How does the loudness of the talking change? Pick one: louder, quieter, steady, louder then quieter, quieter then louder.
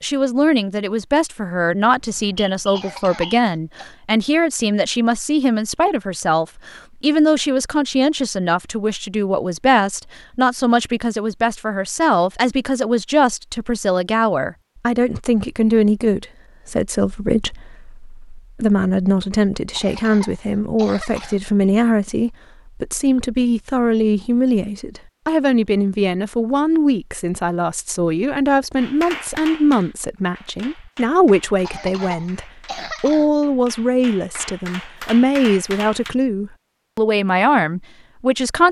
steady.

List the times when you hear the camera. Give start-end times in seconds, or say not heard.
not heard.